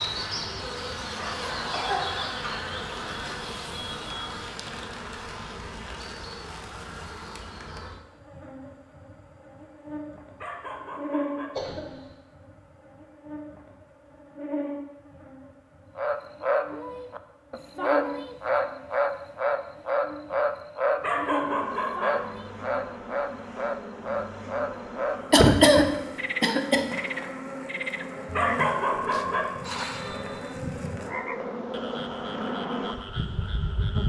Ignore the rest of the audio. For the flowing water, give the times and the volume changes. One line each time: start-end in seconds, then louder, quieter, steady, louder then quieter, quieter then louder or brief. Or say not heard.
not heard.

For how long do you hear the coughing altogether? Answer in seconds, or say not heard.
3 s.